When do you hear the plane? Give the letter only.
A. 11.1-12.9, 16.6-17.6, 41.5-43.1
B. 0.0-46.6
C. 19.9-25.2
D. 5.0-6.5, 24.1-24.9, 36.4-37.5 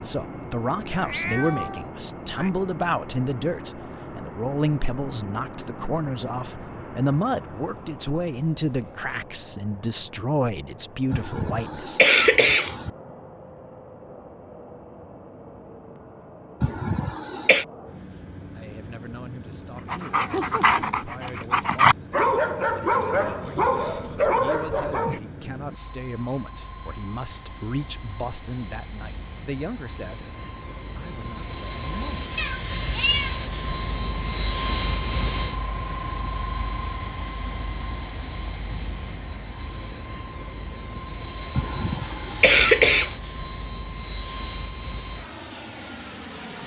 B.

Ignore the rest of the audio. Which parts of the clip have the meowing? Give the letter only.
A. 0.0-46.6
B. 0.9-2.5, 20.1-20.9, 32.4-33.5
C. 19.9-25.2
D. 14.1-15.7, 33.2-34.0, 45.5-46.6
B.